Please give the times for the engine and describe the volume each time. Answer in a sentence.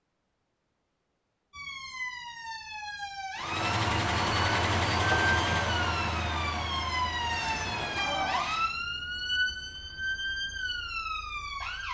You can hear the engine from 3.4 to 8.7 s, getting quieter.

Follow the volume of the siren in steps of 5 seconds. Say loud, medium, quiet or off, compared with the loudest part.
medium, loud, loud.